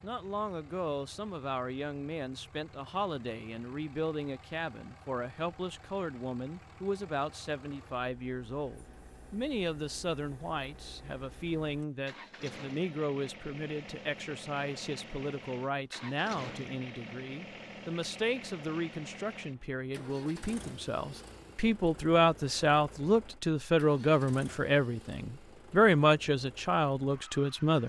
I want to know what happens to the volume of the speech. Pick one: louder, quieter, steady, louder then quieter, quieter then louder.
louder.